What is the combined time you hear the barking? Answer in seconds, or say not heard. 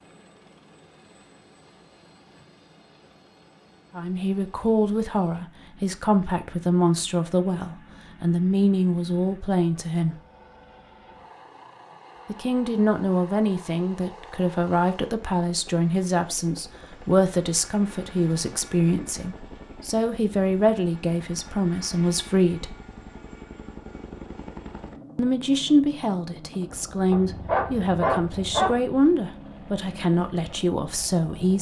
2 s.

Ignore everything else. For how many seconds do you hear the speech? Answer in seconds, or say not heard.
23 s.